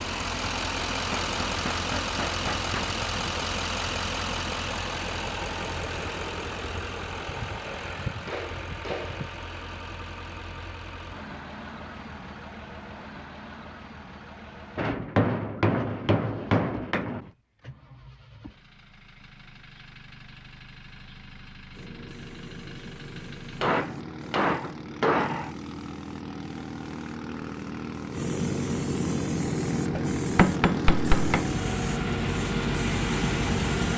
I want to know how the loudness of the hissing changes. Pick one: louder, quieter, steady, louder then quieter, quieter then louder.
louder.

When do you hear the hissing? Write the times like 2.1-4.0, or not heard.
21.7-33.9.